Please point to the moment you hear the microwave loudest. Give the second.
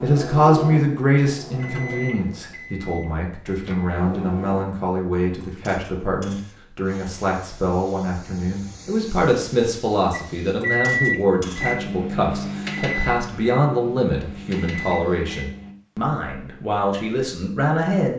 11 s.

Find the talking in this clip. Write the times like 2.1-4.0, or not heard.
0.0-18.1.